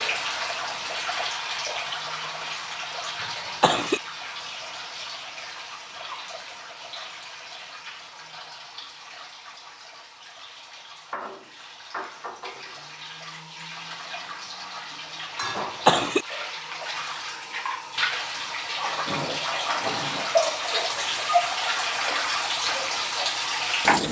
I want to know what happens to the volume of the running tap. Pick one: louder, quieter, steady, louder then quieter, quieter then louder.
quieter then louder.